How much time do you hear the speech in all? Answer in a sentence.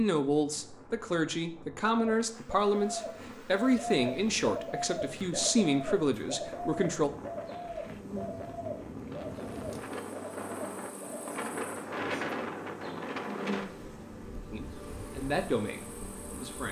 The speech can be heard for 9 seconds in total.